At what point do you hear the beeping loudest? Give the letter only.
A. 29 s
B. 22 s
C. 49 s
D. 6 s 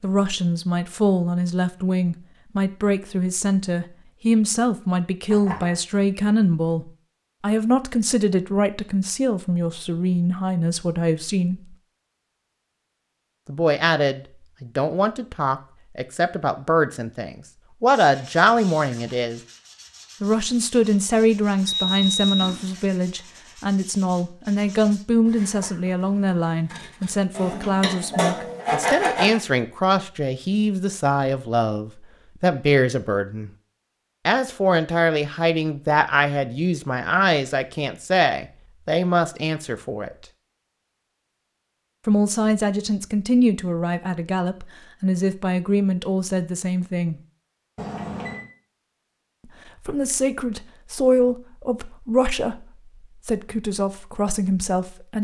B.